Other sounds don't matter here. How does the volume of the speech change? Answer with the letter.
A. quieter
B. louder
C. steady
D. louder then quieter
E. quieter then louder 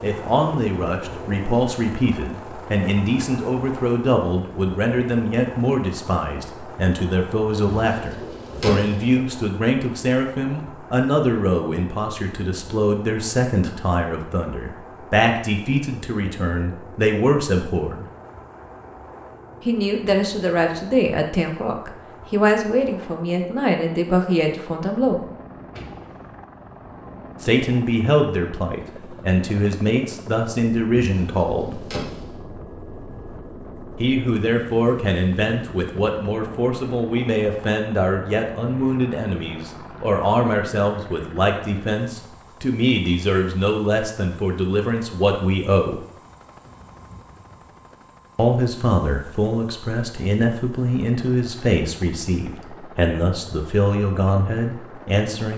C.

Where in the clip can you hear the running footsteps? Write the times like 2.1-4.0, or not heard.
not heard.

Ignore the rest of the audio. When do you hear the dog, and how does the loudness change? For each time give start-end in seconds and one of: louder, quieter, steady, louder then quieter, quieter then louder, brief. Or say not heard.
not heard.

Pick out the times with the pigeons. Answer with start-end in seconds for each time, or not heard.
7.7-9.2, 31.2-32.5.